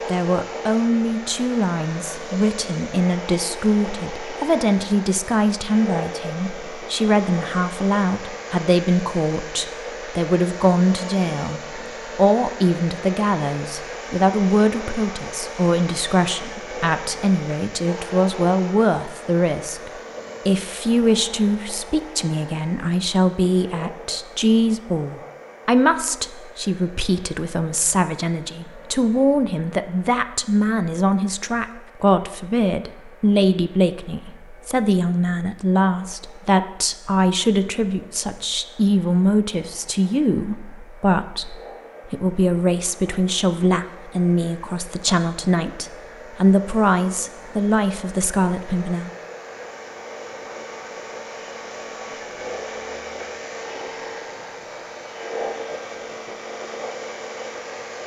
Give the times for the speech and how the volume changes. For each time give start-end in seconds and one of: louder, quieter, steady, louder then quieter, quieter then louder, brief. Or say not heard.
0.1-49.1 steady.